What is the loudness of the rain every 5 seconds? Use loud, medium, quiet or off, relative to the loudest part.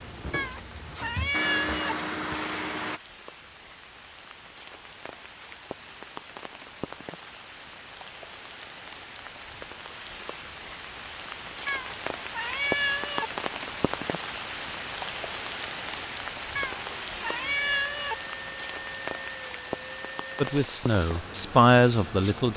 quiet, medium, loud, loud, medium.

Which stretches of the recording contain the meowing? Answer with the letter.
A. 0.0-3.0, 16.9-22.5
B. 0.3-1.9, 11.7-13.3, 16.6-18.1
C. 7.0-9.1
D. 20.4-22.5
B.